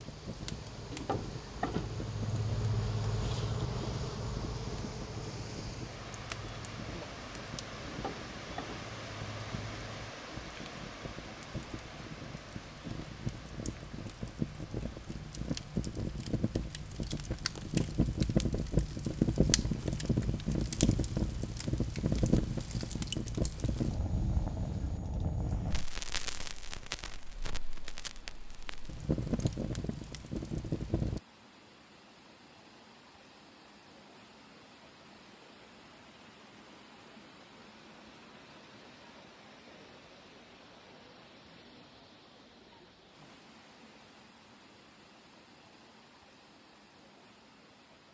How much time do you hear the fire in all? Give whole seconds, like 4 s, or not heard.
31 s.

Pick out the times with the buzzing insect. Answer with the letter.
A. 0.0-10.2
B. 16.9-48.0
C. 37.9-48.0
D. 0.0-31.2
A.